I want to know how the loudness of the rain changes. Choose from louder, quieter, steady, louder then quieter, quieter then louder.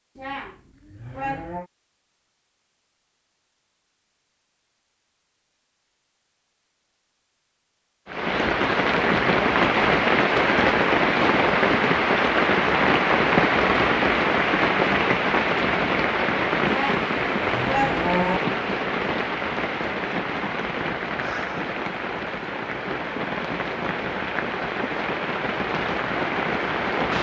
quieter.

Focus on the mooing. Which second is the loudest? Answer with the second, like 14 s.
18 s.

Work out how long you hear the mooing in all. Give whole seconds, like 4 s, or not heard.
3 s.